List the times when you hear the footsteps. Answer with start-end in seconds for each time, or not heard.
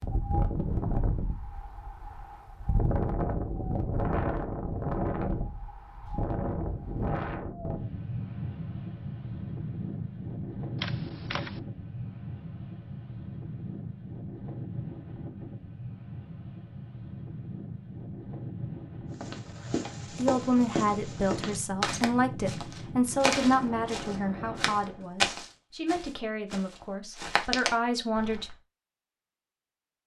19.2-28.6.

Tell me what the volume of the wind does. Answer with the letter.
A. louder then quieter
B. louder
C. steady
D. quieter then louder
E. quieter
E.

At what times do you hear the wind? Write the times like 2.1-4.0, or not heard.
0.0-25.1.